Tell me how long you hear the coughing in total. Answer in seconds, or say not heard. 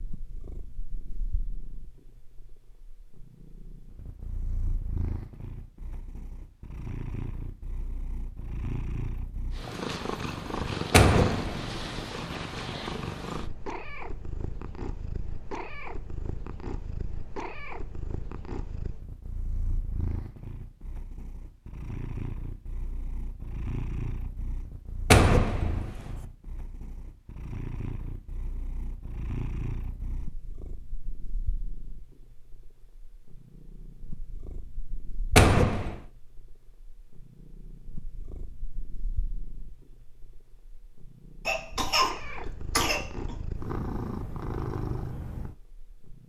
2 s.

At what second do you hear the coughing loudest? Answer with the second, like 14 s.
42 s.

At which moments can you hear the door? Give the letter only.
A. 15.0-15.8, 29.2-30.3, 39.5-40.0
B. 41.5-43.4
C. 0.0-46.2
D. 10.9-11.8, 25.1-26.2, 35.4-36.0
D.